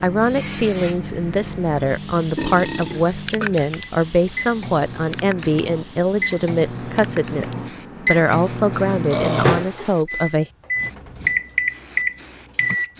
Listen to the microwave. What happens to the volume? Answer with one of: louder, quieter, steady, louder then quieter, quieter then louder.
louder.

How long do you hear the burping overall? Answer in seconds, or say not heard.
2 s.